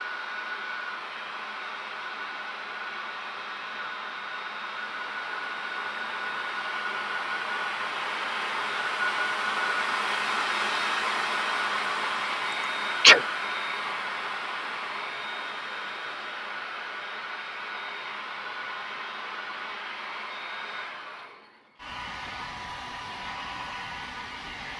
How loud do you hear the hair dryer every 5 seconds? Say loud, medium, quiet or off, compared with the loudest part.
medium, loud, loud, medium, medium.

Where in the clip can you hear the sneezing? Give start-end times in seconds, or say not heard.
12.5-13.2.